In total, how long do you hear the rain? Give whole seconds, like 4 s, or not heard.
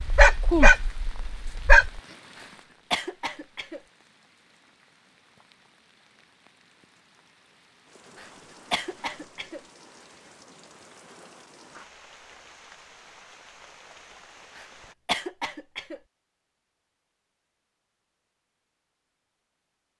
15 s.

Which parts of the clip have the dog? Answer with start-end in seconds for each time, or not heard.
0.0-2.0.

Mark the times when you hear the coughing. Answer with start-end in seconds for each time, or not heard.
2.4-3.8, 8.2-9.6, 14.6-16.0.